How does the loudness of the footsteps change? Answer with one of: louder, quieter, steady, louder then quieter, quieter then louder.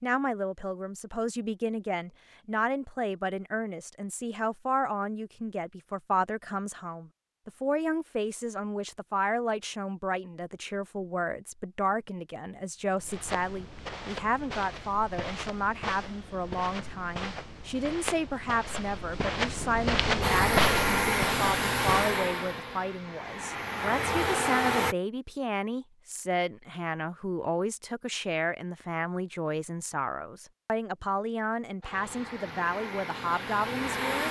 louder.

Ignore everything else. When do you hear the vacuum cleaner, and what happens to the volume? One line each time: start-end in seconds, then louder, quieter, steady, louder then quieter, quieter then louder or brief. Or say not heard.
20.2-24.9 quieter then louder
31.8-34.2 brief.